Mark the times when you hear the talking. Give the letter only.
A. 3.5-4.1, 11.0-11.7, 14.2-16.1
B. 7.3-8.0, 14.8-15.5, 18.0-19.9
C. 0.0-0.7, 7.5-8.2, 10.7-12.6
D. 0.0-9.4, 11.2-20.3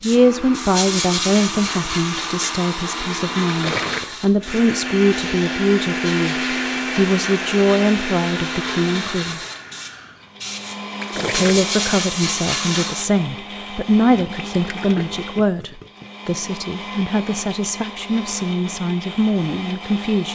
D.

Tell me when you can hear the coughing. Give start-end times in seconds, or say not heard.
not heard.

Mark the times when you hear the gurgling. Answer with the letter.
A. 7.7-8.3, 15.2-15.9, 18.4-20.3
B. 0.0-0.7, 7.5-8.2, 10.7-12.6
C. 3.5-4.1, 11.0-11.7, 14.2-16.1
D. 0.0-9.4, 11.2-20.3
C.